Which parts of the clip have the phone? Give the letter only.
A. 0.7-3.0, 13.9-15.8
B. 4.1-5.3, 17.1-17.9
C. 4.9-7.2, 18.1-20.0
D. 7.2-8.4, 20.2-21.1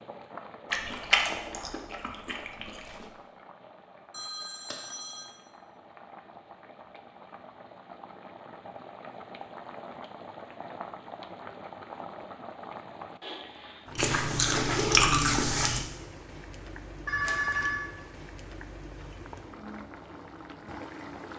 B.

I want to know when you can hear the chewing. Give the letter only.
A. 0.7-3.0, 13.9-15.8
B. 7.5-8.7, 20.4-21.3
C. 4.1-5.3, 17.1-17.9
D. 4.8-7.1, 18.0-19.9
A.